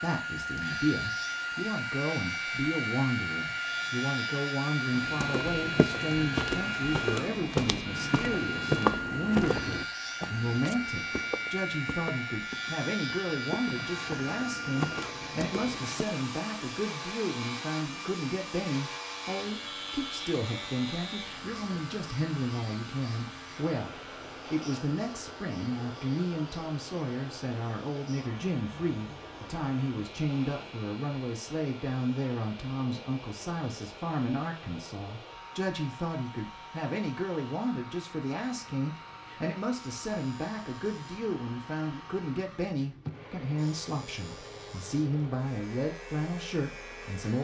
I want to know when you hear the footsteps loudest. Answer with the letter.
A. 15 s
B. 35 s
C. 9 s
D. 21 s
C.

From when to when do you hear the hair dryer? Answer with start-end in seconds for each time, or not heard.
0.0-47.3.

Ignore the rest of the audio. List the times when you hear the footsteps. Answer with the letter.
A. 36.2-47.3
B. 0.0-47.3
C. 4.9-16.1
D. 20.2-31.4
C.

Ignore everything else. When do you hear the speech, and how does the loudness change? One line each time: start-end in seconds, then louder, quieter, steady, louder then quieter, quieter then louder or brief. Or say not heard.
0.0-47.3 steady.